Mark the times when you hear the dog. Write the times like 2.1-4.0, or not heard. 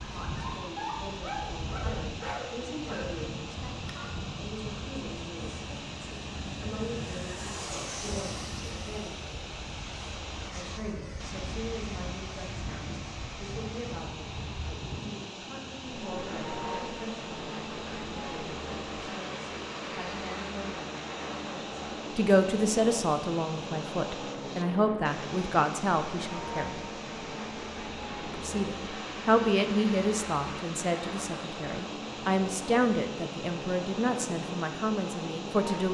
0.1-4.2.